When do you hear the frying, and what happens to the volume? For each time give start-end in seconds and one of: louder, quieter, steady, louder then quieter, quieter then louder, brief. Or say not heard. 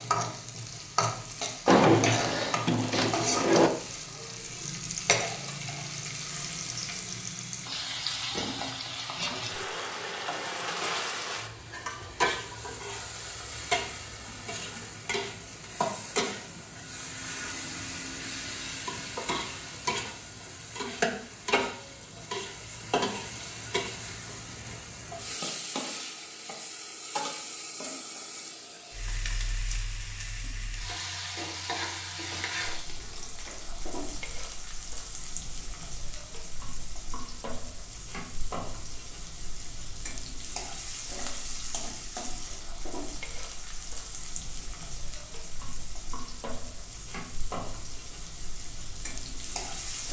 0.0-50.0 quieter.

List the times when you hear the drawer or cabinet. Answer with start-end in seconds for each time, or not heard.
1.6-3.7.